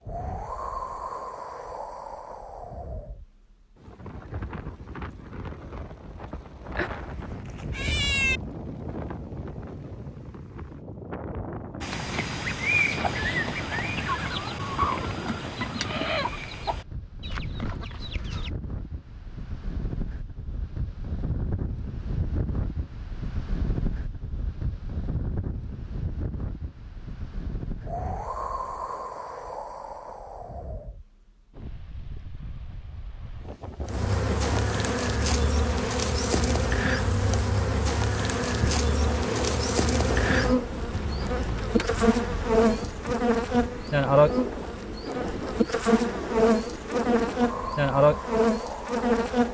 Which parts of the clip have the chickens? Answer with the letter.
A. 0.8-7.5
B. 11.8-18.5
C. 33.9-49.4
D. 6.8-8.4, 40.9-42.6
B.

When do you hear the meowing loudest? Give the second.
8 s.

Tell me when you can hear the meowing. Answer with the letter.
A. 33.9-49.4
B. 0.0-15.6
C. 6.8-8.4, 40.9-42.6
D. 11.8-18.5
C.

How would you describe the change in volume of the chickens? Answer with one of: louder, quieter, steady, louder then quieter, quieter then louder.
quieter.